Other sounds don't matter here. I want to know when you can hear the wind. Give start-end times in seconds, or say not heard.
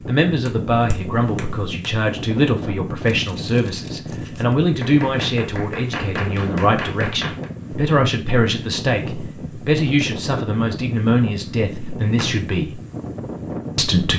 0.0-14.1.